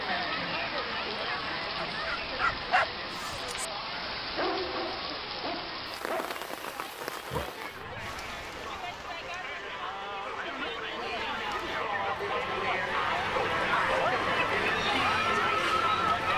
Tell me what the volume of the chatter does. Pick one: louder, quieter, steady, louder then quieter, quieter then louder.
quieter then louder.